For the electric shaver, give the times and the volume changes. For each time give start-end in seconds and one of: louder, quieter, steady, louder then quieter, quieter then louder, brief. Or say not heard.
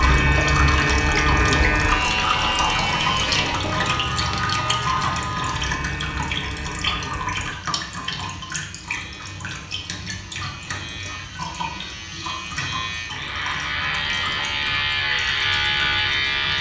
0.0-16.5 quieter then louder.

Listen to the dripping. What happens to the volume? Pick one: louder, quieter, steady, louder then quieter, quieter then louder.
quieter.